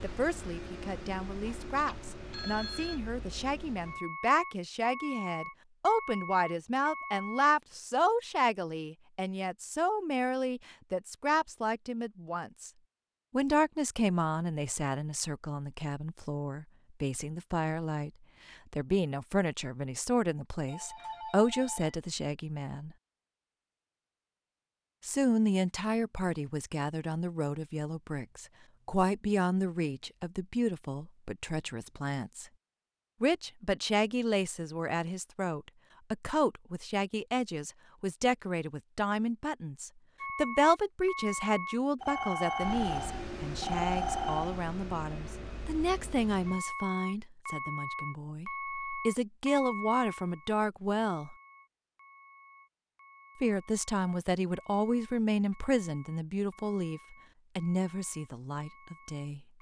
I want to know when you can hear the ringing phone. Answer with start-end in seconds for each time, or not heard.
1.4-3.0, 20.6-22.0, 42.0-44.6.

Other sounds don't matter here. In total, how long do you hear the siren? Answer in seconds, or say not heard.
not heard.